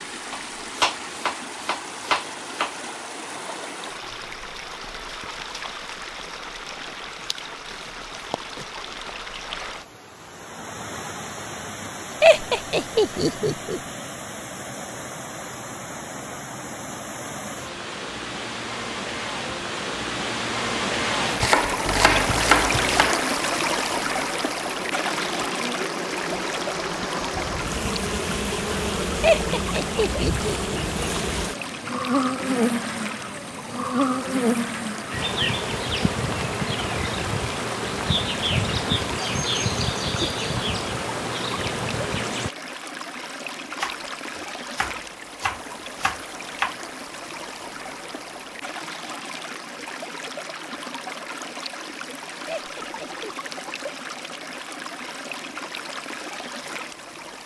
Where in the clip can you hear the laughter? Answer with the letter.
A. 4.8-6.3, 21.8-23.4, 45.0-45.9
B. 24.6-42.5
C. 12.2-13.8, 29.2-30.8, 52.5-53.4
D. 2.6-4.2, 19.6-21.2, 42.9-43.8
C.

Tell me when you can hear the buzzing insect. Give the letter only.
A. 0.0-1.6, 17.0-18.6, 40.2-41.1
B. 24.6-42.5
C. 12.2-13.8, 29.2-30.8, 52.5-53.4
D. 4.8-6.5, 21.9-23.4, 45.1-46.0
B.